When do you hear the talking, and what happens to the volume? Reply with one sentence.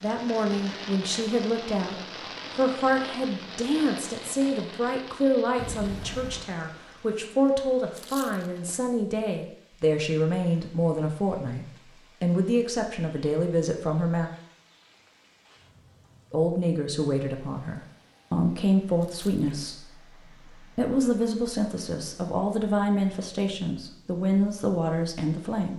You can hear the talking from 0.0 to 14.3 s, at a steady volume; and from 16.3 to 25.7 s, at a steady volume.